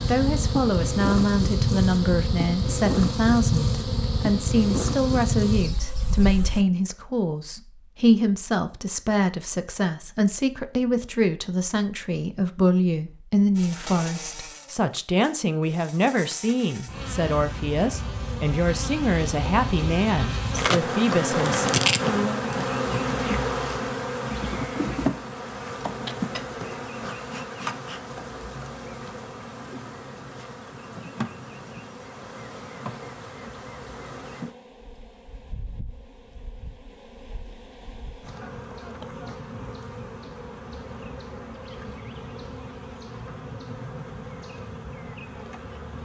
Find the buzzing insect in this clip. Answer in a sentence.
The buzzing insect can be heard from 0.0 to 6.7 s and from 13.6 to 45.9 s.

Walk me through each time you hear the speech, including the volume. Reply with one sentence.
You can hear the speech from 0.1 to 21.7 s, at a steady volume.